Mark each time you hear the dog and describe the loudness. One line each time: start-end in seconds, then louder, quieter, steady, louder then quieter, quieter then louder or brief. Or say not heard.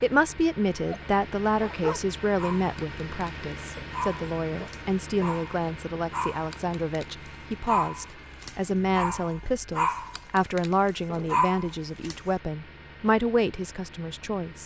0.8-12.2 louder.